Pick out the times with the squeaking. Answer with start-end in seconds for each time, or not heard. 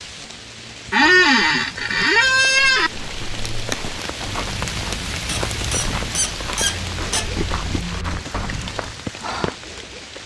0.9-2.9, 5.2-7.2.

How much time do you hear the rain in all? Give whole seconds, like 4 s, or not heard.
10 s.